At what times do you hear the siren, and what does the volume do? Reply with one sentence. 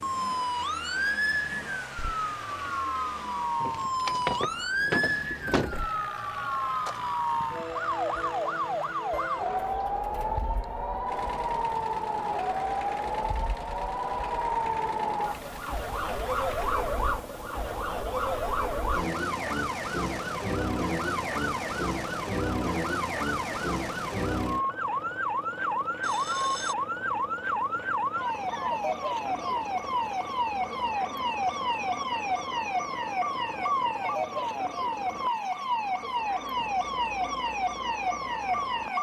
The siren can be heard from 0.0 to 38.9 s, at a steady volume.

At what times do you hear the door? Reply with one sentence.
You can hear the door from 3.6 to 5.8 s.